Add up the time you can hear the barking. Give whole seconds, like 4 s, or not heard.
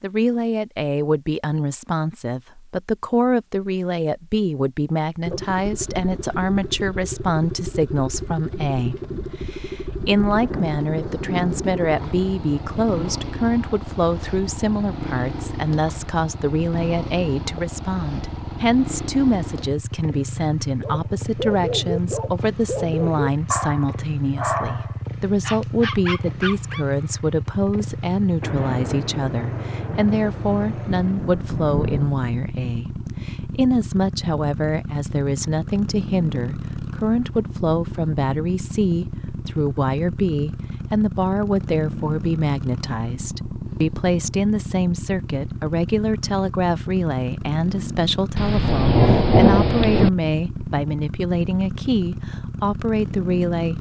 6 s.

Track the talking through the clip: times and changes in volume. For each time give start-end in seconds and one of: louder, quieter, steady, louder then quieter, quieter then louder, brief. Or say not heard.
0.0-53.7 steady.